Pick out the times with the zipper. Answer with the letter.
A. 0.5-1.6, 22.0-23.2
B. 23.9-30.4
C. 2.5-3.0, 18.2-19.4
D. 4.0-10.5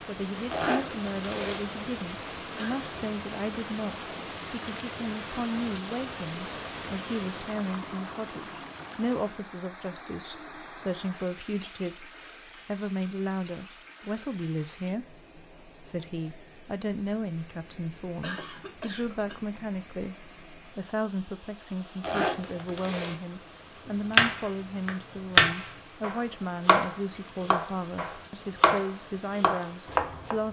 A.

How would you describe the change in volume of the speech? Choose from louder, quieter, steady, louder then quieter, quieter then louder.
steady.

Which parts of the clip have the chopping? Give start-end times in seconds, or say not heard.
23.9-30.4.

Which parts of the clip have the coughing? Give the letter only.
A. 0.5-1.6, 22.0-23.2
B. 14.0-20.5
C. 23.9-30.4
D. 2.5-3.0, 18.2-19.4
D.